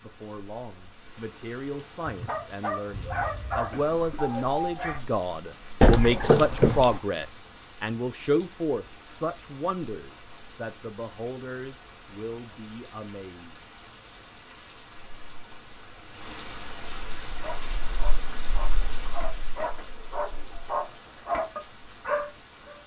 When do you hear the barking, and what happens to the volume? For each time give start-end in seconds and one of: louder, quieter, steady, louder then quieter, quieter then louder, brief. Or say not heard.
2.0-5.0 brief
17.4-22.8 louder.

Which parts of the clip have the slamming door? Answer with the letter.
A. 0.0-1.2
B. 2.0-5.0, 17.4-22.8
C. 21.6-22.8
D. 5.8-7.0
D.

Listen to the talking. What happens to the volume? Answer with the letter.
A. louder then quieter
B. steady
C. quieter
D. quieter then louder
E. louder
A.